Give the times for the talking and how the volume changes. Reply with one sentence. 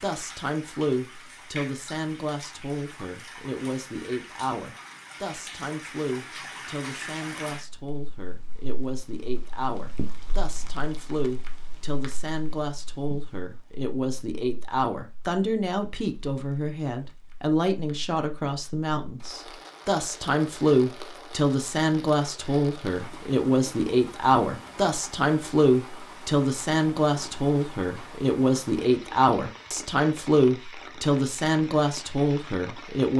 You can hear the talking from 0.0 to 33.1 s, getting louder.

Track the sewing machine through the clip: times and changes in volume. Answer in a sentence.
The sewing machine can't be heard in this clip.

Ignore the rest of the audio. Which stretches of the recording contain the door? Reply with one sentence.
You can't hear the door here.